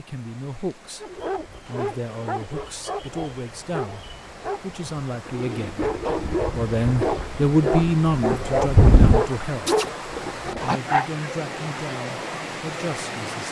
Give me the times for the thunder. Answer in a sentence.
The thunder can be heard from 5.8 to 9.2 s.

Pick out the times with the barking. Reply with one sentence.
The barking can be heard from 1.0 to 11.2 s.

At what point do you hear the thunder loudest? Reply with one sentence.
The volume of the thunder peaks at 9 seconds.